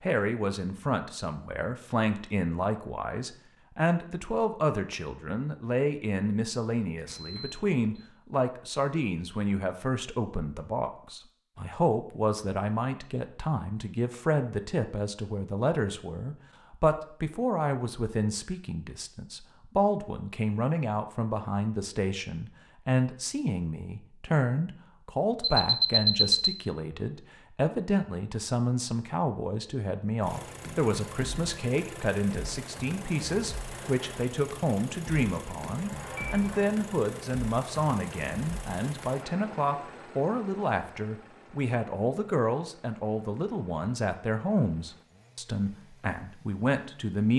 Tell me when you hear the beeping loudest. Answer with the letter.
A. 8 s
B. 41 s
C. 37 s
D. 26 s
D.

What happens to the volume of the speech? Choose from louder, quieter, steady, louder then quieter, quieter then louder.
steady.